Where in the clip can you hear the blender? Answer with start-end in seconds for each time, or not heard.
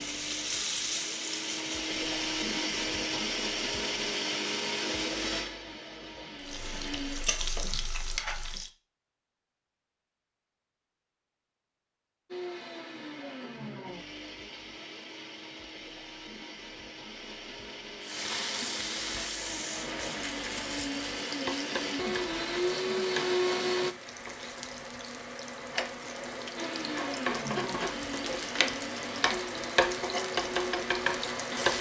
0.0-7.3, 12.3-23.9, 26.6-31.7.